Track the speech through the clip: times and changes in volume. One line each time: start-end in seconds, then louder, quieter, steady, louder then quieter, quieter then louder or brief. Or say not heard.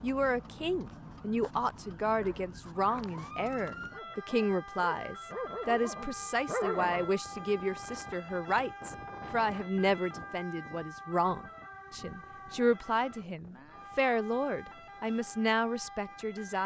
0.0-16.6 steady.